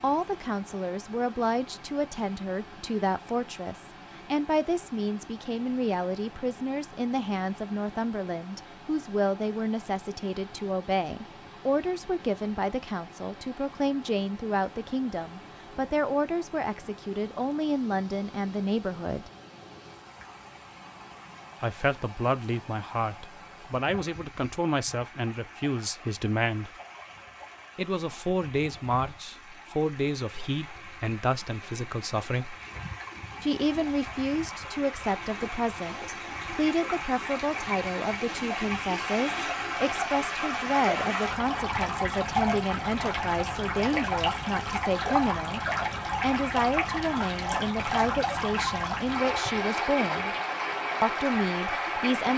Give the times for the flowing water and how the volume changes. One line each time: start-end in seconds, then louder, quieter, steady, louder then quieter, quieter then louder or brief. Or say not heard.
0.0-52.3 louder.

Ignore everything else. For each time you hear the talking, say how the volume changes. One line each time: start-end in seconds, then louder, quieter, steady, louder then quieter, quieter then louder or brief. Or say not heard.
0.0-19.3 steady
21.6-26.7 steady
27.8-32.5 quieter
33.4-50.4 steady
51.0-52.3 brief.